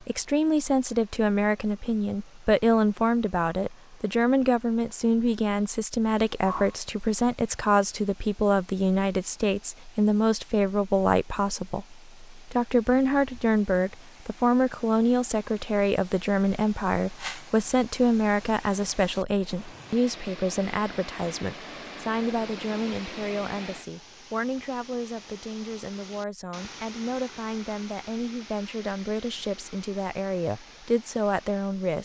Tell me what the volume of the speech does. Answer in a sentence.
The loudness of the speech goes down.